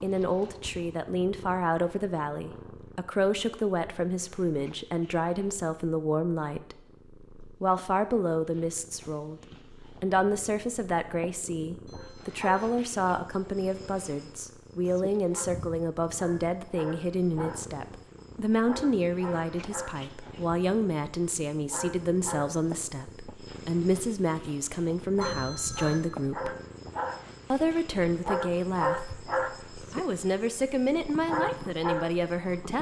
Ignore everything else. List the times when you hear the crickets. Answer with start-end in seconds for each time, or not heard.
11.9-32.7.